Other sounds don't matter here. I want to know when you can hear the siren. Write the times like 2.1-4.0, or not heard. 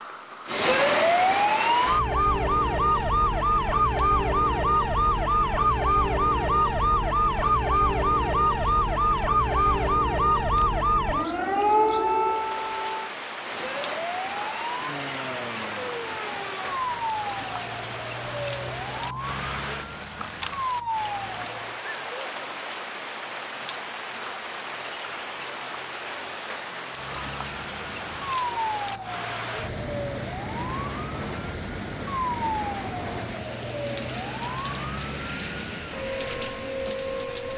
0.0-21.8, 26.9-37.5.